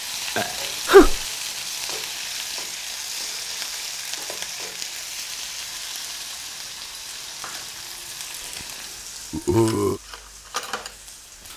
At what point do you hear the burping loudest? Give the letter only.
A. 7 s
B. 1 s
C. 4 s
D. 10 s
B.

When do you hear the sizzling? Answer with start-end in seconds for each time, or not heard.
0.0-11.5.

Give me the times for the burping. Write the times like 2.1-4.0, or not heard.
0.3-1.2, 9.3-10.0.